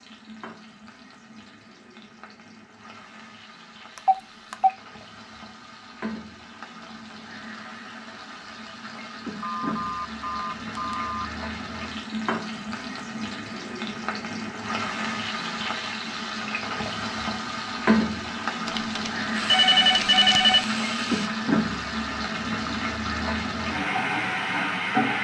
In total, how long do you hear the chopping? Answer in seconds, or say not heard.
not heard.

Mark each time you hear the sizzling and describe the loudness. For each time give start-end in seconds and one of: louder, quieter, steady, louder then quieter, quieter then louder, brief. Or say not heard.
0.0-25.2 louder.